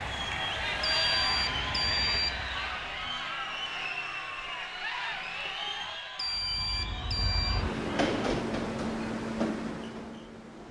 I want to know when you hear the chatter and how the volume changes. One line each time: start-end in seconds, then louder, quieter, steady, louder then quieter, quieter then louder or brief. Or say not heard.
0.0-8.2 quieter.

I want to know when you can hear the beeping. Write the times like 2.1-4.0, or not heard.
0.8-2.5, 6.2-7.7.